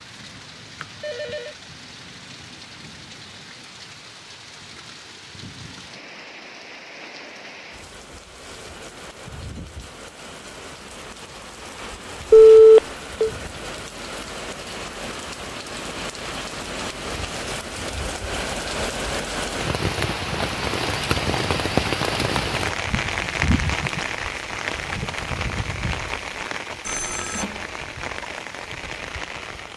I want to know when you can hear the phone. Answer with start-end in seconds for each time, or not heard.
0.8-1.6, 12.3-13.3, 26.9-27.6.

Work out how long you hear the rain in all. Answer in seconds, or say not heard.
30 s.